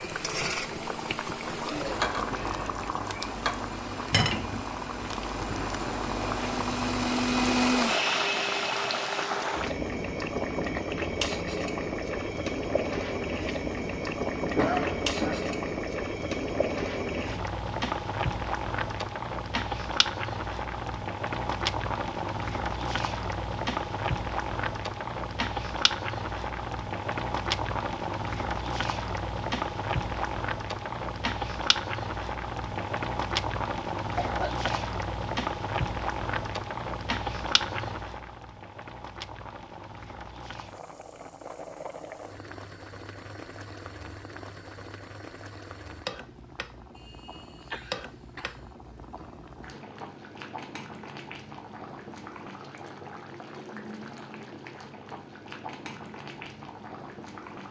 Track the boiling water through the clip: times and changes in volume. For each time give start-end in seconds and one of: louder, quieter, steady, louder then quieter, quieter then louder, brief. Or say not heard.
0.0-57.6 quieter.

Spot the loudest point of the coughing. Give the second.
15 s.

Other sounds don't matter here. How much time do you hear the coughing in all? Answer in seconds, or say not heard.
3 s.